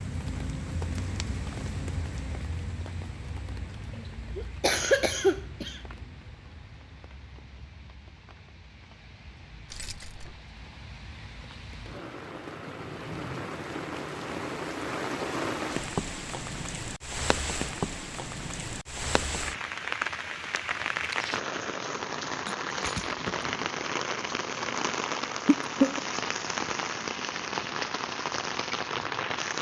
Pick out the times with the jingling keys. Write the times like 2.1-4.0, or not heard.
9.7-10.4, 22.4-23.7.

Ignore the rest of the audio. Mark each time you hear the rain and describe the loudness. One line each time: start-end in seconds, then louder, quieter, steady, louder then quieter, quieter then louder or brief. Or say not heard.
0.0-29.5 quieter then louder.